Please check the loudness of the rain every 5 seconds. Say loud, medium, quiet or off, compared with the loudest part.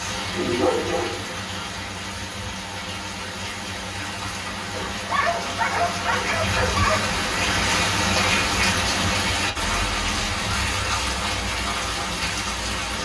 medium, loud, loud.